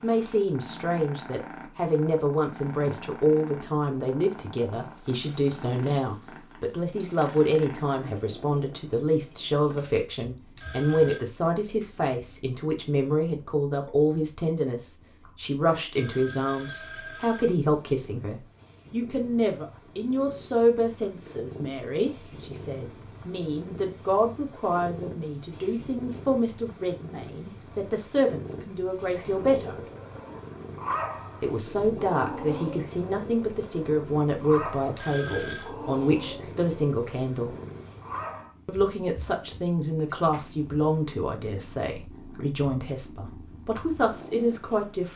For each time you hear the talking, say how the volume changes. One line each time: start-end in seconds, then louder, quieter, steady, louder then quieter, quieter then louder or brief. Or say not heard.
0.0-29.8 steady
31.4-37.5 steady
38.6-45.1 quieter then louder.